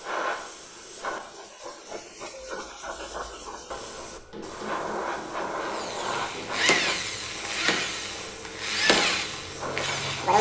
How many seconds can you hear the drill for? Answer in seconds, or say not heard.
5 s.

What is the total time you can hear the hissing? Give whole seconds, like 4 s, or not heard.
10 s.